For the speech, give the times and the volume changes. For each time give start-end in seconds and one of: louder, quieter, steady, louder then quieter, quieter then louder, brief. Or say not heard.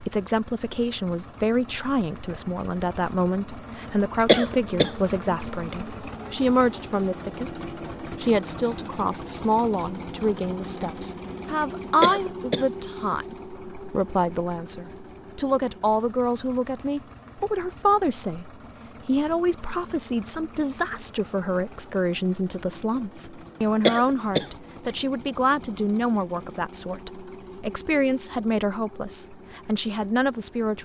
0.0-30.8 steady.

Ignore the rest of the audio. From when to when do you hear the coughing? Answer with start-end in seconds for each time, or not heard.
4.2-5.0, 12.0-12.7, 23.9-24.5.